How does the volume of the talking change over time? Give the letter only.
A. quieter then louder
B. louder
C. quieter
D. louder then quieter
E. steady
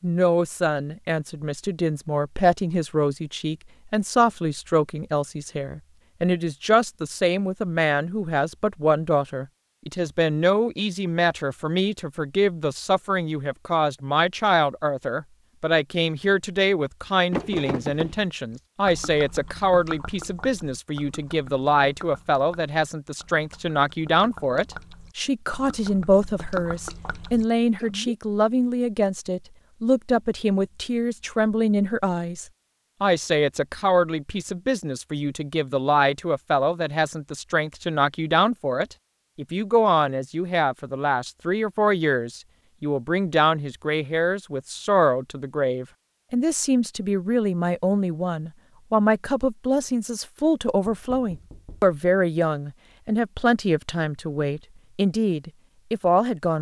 E.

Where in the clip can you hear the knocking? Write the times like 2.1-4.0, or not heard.
17.3-18.2, 50.9-52.0.